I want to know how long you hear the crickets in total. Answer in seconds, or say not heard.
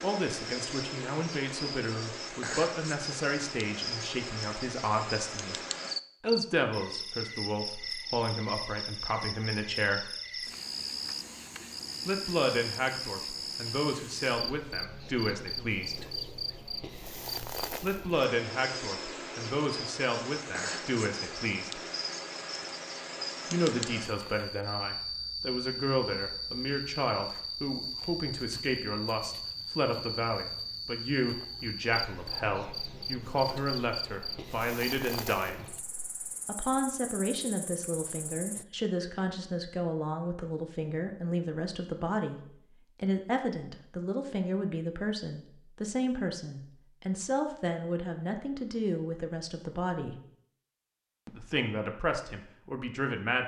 39 s.